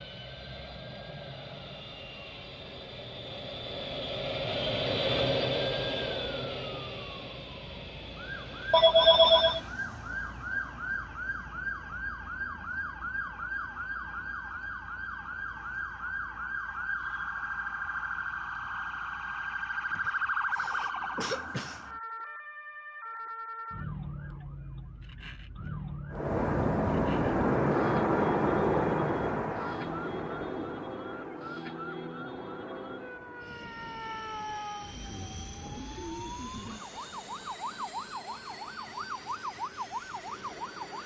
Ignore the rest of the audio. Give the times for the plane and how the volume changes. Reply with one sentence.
The plane can be heard from 0.0 to 9.8 s, getting louder then quieter; and from 26.1 to 41.0 s, getting quieter.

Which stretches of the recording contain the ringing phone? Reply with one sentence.
You can hear the ringing phone from 8.7 to 9.6 s.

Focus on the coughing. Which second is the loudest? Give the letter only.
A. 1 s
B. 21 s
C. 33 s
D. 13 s
B.